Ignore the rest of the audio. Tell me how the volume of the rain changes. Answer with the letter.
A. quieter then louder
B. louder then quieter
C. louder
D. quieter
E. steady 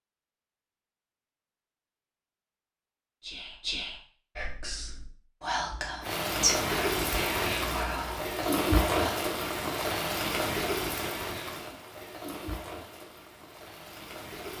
D.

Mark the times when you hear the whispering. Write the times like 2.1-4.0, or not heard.
3.2-9.2.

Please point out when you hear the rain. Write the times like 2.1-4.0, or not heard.
6.0-14.5.